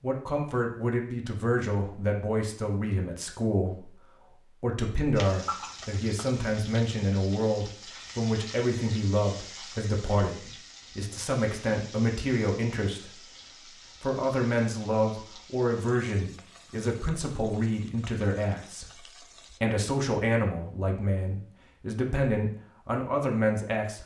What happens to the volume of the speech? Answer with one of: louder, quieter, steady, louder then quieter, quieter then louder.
steady.